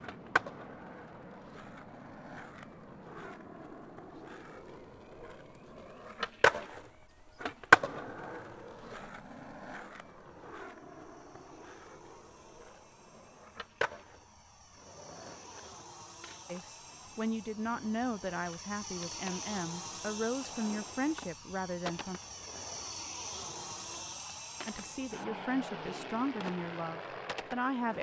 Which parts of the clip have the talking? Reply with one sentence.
The talking can be heard from 16.4 to 22.2 s and from 24.6 to 27.9 s.